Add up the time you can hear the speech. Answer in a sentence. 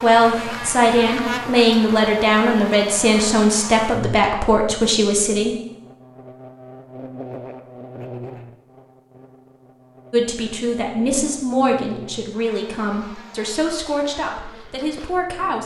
The speech can be heard for 11 seconds in total.